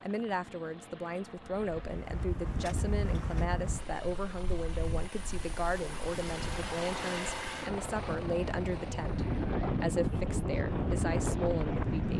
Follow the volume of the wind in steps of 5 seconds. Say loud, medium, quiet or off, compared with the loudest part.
medium, medium, loud.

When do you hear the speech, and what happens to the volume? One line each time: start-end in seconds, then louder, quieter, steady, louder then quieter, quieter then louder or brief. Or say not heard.
0.0-12.1 steady.